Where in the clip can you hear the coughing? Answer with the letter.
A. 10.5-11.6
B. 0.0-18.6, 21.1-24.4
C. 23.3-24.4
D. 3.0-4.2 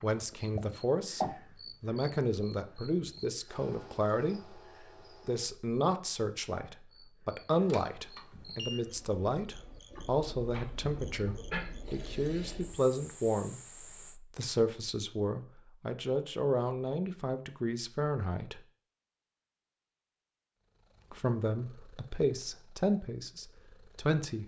A.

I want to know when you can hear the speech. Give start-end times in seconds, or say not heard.
0.0-18.6, 21.1-24.4.